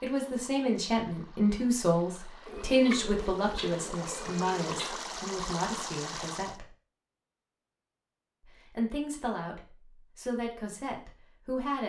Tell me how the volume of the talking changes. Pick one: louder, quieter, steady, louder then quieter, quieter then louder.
quieter.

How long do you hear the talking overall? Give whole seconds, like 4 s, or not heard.
10 s.